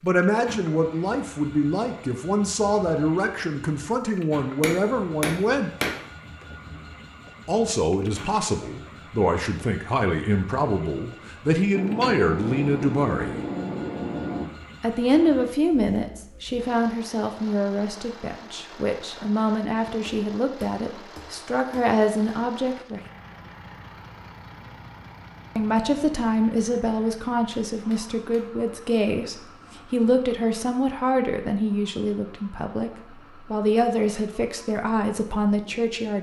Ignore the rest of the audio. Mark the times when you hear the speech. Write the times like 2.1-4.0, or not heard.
0.0-5.7, 7.5-13.4, 14.8-23.0, 25.6-36.1.